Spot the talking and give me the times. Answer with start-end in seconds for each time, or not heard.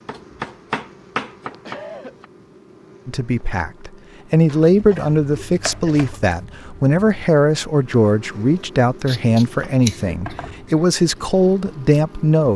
3.0-12.5.